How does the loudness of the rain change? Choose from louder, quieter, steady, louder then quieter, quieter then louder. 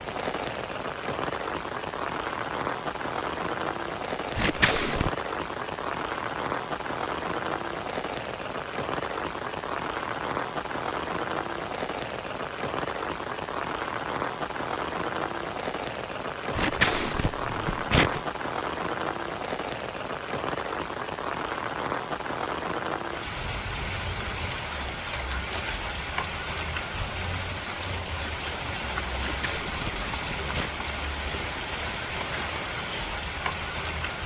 steady.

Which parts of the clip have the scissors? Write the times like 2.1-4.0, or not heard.
4.3-5.1, 16.6-18.2, 29.1-30.7.